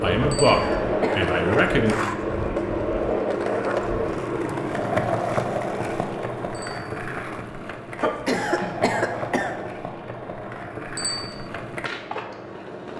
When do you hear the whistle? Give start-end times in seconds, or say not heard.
not heard.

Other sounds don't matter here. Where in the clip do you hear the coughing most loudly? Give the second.
8 s.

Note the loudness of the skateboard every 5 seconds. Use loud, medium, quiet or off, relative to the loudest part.
loud, loud, medium.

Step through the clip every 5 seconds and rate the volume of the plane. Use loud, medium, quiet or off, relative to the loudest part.
loud, medium, quiet.